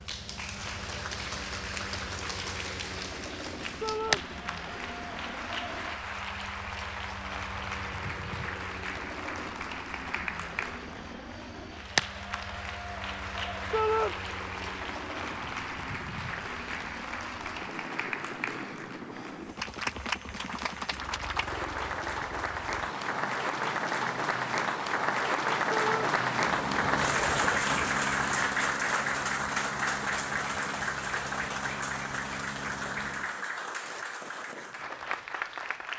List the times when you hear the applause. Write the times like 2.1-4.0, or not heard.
0.0-35.9.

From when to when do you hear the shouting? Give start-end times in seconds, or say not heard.
3.8-4.2, 13.7-14.2, 25.7-26.1.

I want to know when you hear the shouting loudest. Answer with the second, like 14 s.
14 s.